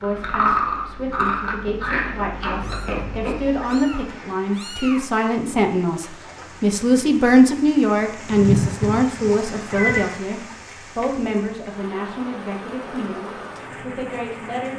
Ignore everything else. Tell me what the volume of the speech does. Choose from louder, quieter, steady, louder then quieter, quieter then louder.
louder then quieter.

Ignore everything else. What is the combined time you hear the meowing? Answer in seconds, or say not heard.
4 s.